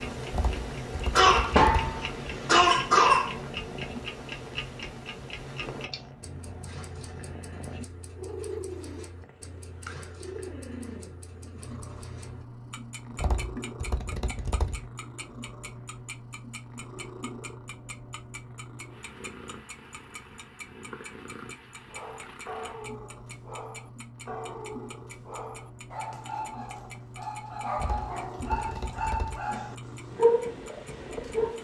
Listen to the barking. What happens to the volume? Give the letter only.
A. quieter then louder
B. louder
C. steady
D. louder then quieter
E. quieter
B.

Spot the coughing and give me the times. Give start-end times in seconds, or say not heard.
1.1-3.4.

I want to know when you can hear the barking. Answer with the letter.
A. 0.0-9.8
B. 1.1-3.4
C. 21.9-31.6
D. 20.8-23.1
C.